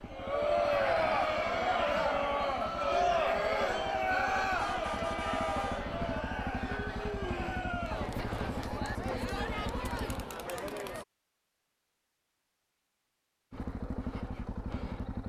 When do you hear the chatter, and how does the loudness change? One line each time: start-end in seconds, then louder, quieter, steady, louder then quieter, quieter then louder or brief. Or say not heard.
0.0-11.1 quieter.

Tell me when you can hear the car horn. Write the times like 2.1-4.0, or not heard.
4.5-5.8.